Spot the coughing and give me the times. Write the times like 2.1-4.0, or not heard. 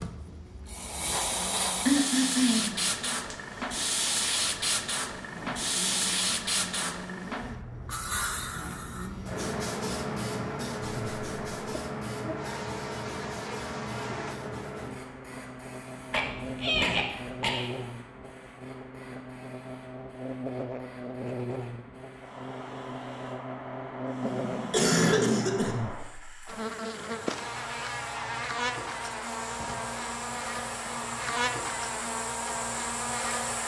1.9-2.8, 16.1-17.7, 24.2-25.8.